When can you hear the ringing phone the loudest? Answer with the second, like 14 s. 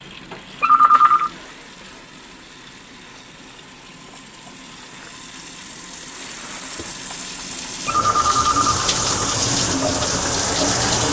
1 s.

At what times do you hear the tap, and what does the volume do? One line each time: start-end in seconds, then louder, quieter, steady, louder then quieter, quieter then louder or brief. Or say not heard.
0.0-11.0 louder.